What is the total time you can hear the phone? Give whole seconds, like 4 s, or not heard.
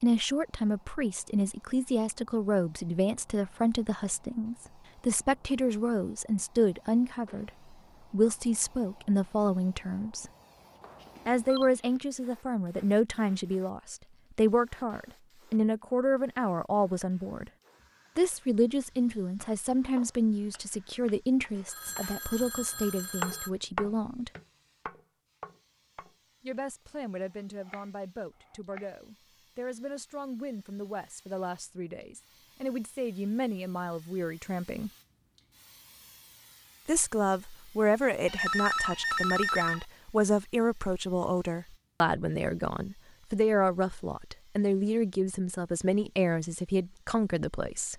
4 s.